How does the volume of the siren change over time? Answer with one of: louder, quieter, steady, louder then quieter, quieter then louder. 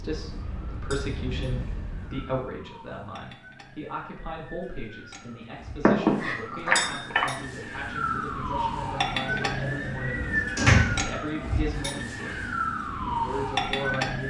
louder.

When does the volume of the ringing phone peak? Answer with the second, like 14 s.
6 s.